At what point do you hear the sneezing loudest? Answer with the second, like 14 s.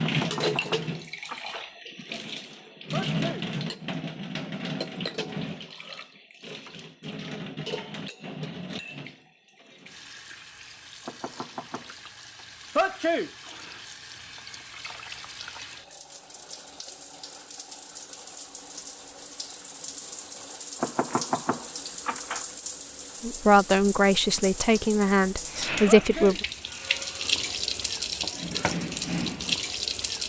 13 s.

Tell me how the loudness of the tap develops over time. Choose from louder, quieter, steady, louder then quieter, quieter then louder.
quieter then louder.